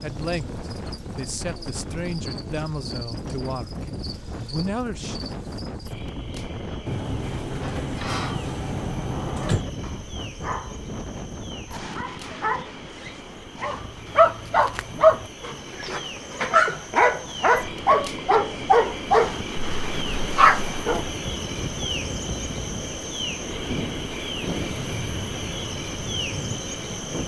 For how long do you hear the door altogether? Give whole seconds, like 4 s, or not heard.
3 s.